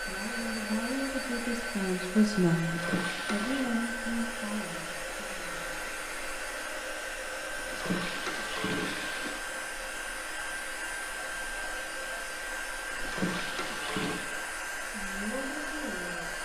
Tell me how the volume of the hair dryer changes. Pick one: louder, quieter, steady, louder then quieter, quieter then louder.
steady.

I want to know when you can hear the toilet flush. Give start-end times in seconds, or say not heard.
2.6-3.7, 7.6-9.4, 12.9-14.2.